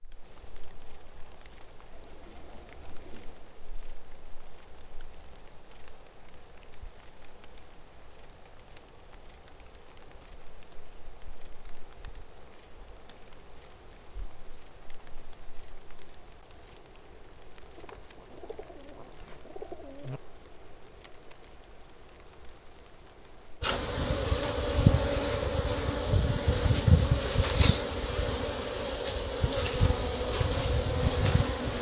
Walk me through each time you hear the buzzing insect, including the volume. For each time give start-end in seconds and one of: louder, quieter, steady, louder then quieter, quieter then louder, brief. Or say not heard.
0.0-31.7 louder.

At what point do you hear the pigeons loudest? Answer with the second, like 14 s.
20 s.